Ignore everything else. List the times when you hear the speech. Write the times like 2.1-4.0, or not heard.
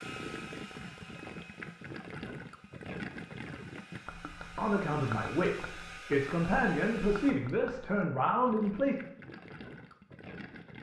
4.5-8.9.